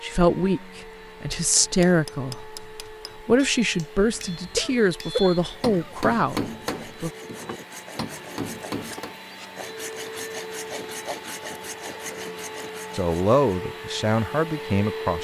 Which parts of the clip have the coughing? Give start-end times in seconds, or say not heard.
4.5-6.0.